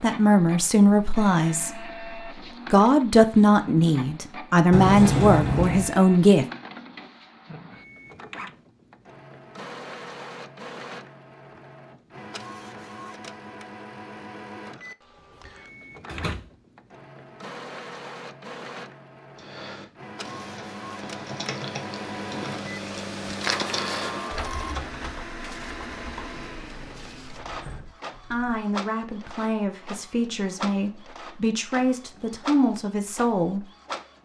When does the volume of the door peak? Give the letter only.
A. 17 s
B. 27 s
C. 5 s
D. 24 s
C.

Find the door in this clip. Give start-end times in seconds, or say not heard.
4.7-5.9, 16.1-16.5, 26.4-27.9.